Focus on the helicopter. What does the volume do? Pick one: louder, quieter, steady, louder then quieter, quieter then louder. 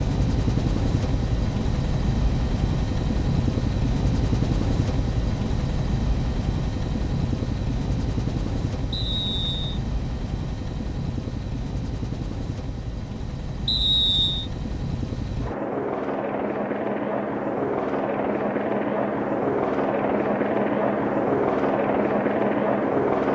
quieter then louder.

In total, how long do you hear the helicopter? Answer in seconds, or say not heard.
23 s.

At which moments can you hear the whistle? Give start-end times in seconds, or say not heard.
8.9-9.8, 13.7-14.5.